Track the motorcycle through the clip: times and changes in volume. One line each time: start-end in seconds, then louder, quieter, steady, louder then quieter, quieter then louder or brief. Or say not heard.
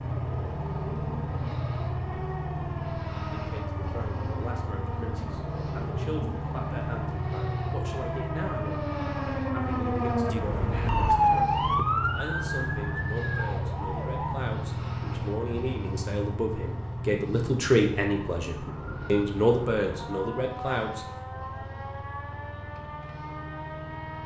0.0-24.2 quieter.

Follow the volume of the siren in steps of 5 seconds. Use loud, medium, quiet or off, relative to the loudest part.
quiet, medium, loud, quiet, quiet.